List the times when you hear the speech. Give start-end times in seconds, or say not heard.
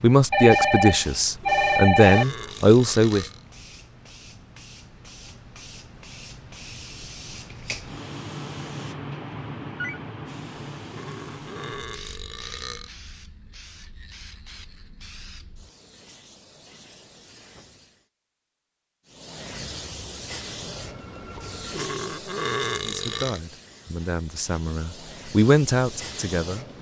0.0-3.3, 22.8-26.6.